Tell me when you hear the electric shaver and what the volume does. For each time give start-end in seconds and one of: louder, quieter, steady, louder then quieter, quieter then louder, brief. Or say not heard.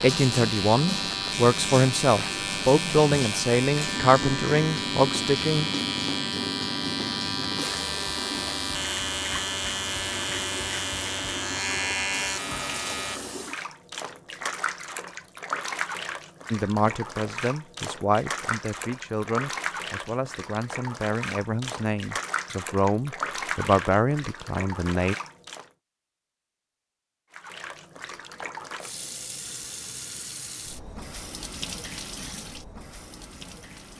0.0-13.2 steady.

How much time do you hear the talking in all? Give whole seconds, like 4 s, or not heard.
14 s.